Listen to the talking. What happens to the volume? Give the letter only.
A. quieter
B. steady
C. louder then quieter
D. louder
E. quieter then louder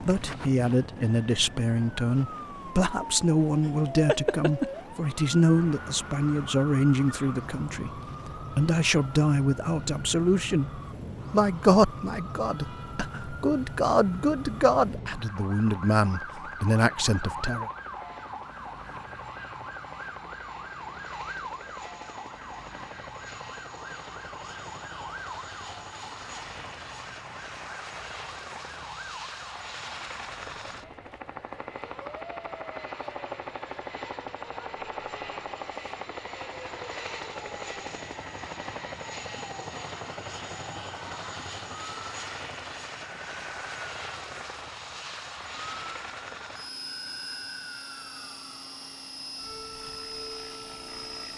B.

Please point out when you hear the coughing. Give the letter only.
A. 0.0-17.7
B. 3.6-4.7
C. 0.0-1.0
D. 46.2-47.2
B.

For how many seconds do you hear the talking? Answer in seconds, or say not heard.
18 s.